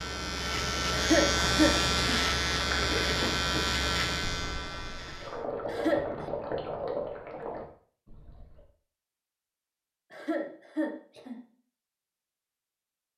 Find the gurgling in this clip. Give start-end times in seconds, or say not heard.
2.5-8.6.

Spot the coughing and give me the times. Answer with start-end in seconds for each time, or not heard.
0.9-2.0, 5.7-6.2, 10.1-11.4.